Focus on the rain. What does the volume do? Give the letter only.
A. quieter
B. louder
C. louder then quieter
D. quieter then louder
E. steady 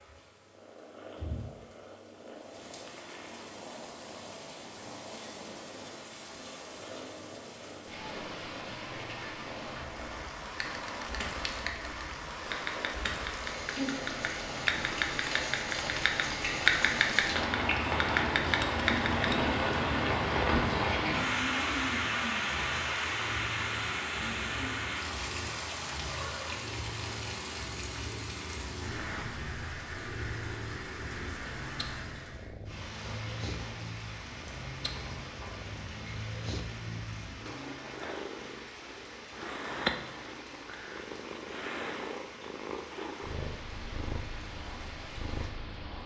C.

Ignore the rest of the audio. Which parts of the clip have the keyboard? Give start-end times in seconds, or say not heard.
10.4-19.4.